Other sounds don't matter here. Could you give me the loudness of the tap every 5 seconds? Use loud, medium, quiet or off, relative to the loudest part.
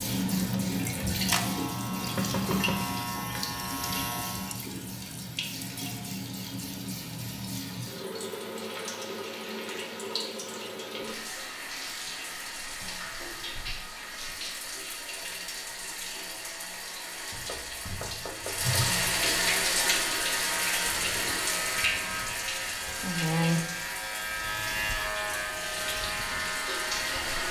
loud, medium, medium, loud, loud, loud.